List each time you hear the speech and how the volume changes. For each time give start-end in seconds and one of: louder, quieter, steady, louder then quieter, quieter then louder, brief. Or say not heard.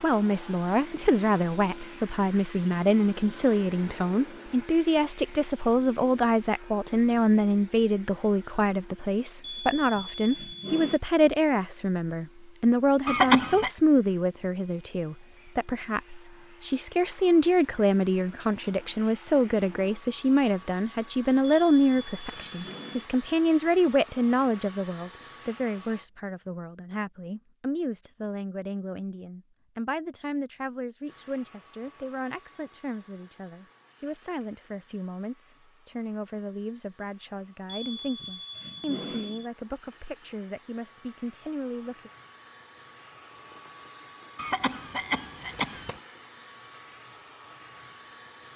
0.0-42.1 quieter.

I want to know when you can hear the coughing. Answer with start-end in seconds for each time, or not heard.
13.1-13.7, 44.4-46.0.